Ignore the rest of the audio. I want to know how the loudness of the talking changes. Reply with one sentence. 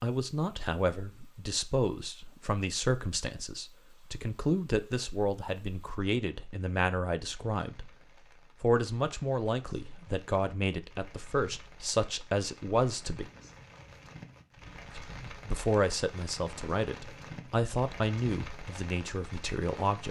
The volume of the talking stays about the same.